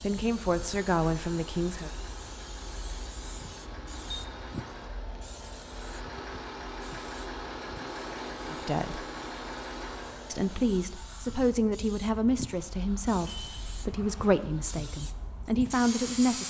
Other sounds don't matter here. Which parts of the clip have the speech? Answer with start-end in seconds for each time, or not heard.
0.0-1.9, 8.5-9.1, 10.3-16.4.